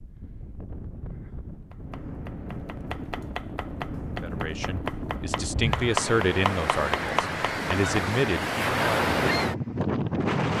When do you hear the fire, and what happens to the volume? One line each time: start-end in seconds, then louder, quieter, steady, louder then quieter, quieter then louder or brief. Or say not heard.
not heard.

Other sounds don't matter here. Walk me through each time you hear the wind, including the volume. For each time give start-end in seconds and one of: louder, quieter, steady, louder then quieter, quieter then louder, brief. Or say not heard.
0.0-10.5 louder.